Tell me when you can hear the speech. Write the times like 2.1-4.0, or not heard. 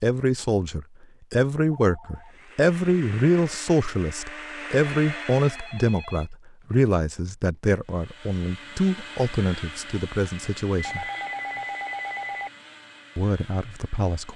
0.0-11.1, 13.2-14.3.